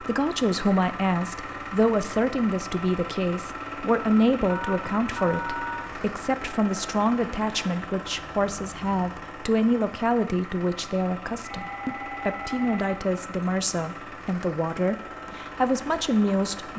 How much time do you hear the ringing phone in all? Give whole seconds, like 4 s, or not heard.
3 s.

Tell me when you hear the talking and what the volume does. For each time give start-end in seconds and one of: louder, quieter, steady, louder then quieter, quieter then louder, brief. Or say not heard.
0.0-16.7 steady.